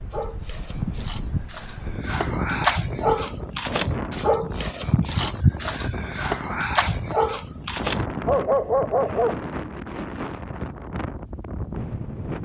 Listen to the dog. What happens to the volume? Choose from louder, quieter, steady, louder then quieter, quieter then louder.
louder.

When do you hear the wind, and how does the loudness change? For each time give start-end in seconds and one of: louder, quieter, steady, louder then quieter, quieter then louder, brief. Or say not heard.
0.0-12.4 steady.